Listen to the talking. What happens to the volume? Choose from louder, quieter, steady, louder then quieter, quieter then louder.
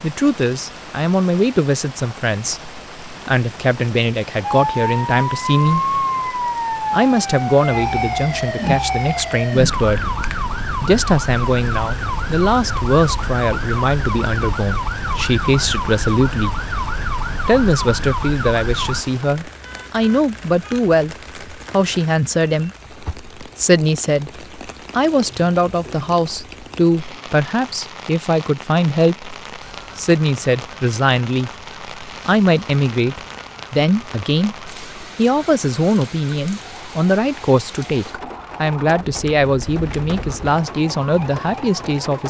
steady.